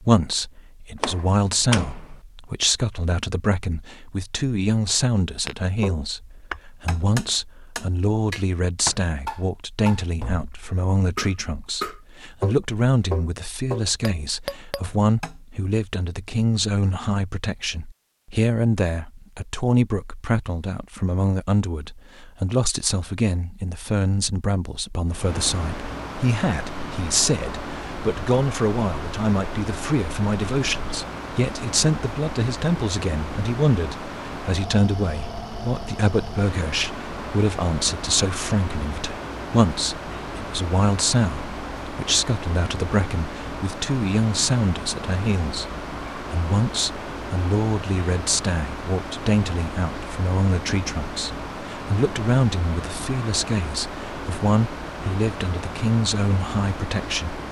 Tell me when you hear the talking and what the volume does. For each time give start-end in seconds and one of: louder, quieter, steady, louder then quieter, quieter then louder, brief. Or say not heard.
0.0-57.4 steady.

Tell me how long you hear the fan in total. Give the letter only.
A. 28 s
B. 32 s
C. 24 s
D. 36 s
B.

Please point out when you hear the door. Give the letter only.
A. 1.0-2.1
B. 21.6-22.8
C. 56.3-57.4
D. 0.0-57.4
A.